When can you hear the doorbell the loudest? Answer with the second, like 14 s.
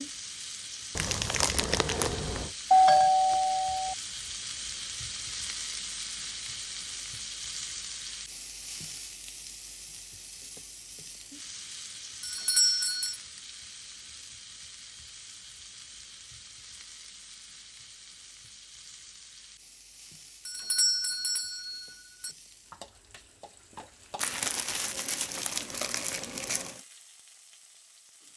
3 s.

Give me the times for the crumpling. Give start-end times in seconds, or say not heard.
0.9-2.5, 24.1-26.8.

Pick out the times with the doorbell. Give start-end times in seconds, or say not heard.
2.7-4.0, 12.2-13.2, 20.4-22.3.